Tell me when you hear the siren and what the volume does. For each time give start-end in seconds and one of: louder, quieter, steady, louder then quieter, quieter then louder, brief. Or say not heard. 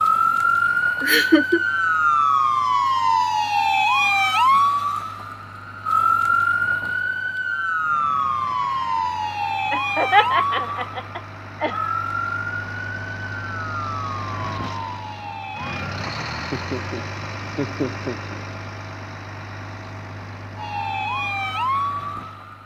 0.0-15.9 quieter
20.6-22.6 brief.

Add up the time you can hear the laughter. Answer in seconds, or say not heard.
5 s.